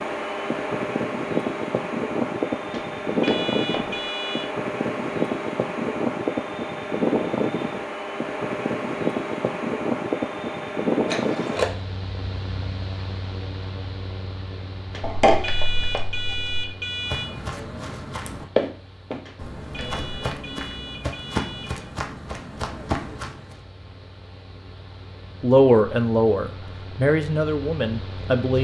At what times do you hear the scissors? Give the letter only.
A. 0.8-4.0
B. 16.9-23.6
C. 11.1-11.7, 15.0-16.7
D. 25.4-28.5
C.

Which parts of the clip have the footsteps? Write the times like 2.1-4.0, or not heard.
16.9-23.6.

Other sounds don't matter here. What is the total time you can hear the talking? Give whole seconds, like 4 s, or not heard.
3 s.